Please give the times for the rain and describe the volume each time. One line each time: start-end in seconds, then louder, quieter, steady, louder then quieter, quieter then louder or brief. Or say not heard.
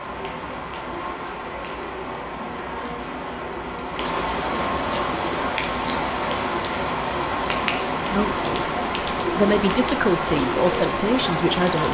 0.0-11.8 louder.